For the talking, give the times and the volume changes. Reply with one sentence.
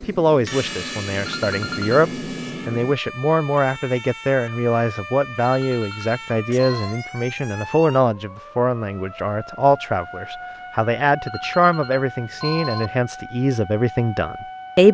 The talking can be heard from 0.0 to 14.8 s, at a steady volume.